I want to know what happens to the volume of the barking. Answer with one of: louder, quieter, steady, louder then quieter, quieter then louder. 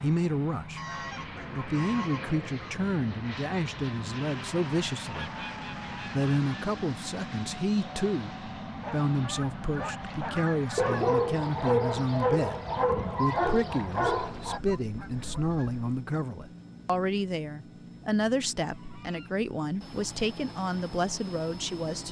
louder.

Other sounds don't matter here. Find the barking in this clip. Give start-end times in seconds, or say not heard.
8.7-14.6.